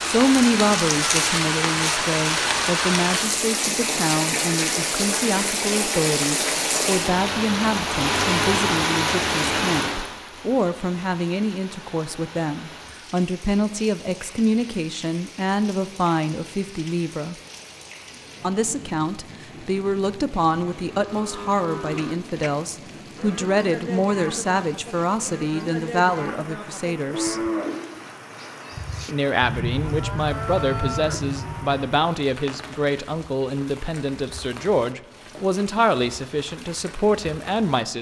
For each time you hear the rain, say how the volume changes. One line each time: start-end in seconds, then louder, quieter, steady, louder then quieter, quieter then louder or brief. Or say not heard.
0.0-37.9 quieter.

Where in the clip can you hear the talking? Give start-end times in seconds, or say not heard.
0.0-17.4, 18.4-27.4, 29.1-37.9.